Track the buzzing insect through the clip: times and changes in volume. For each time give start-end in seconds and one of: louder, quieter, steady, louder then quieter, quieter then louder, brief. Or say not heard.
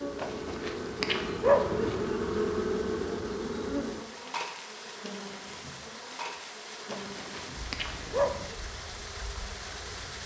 0.0-10.2 quieter.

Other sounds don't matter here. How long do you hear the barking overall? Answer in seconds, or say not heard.
4 s.